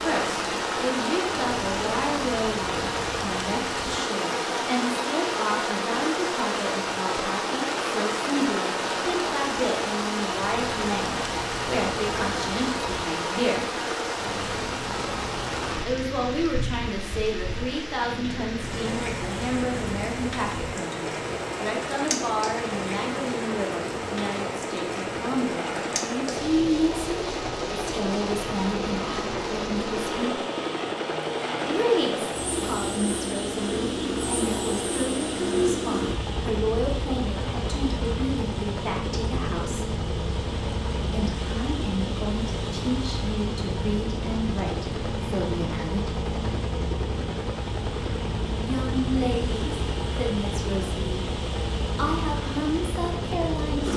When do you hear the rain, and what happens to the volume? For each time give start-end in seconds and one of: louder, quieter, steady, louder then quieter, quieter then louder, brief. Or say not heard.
0.0-53.9 quieter.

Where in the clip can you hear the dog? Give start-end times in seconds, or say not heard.
not heard.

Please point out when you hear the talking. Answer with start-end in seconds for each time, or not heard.
0.1-13.7, 15.8-30.4, 31.6-39.9, 41.1-46.2, 48.6-51.1, 52.0-53.9.